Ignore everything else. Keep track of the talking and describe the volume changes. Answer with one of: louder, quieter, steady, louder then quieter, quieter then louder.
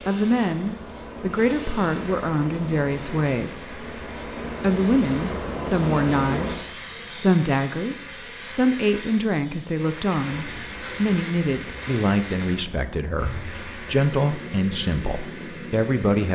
steady.